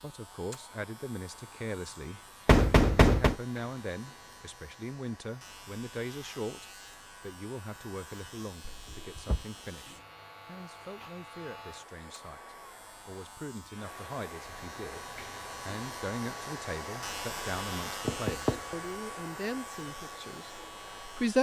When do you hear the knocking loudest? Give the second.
3 s.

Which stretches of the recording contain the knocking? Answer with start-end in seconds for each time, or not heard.
2.5-3.4, 8.7-9.4, 18.1-18.6.